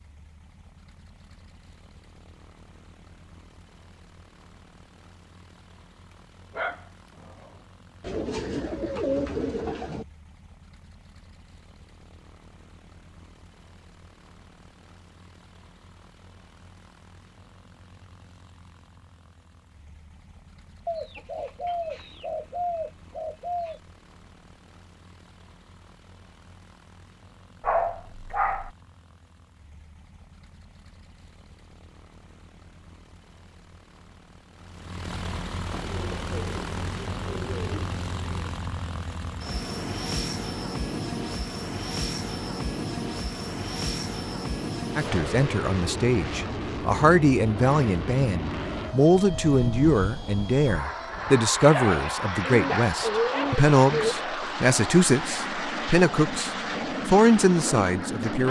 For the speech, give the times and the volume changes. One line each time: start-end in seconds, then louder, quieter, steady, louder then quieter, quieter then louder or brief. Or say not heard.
45.0-58.4 steady.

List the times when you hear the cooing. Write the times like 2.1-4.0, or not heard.
8.0-10.1, 20.9-23.8, 35.7-38.6, 52.4-54.1.